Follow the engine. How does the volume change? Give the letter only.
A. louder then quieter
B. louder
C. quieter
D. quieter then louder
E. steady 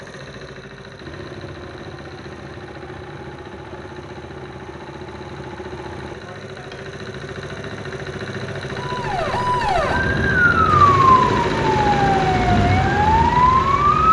B.